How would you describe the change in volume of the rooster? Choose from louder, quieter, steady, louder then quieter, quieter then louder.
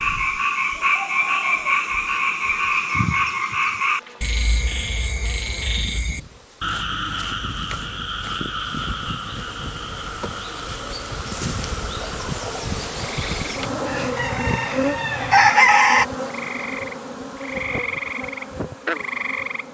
louder.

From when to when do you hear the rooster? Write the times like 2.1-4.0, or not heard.
12.0-16.1.